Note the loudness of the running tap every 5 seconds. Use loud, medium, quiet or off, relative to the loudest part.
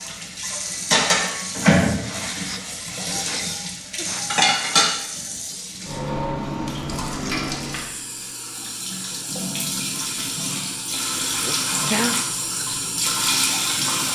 loud, medium, loud.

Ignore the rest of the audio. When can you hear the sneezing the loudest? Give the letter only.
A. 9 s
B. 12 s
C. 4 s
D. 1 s
B.